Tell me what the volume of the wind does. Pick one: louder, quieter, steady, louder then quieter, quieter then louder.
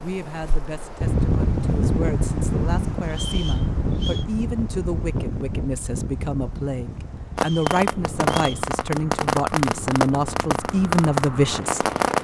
quieter.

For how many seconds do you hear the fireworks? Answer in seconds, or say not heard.
5 s.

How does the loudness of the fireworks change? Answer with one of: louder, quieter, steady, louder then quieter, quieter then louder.
quieter then louder.